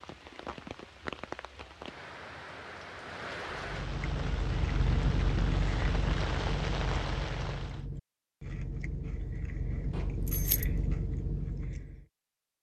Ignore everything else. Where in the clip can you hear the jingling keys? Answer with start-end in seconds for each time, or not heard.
9.9-10.7.